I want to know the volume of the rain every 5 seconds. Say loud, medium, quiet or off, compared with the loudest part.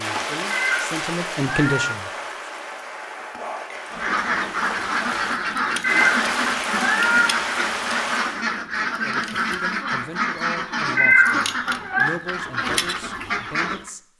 loud, loud, off.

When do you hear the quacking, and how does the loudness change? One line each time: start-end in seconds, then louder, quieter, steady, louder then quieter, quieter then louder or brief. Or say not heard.
3.9-13.9 steady.